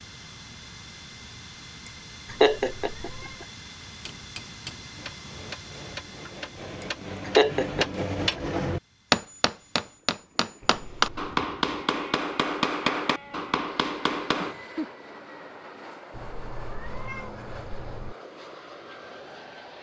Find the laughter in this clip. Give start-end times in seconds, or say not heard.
1.9-3.1, 6.8-8.6, 14.3-14.9.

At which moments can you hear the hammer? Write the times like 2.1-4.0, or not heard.
3.9-14.6.